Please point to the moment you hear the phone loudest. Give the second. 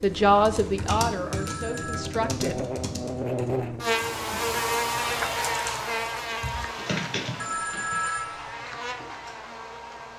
8 s.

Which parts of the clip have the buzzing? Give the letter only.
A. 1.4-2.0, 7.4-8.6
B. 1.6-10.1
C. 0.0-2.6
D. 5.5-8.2
B.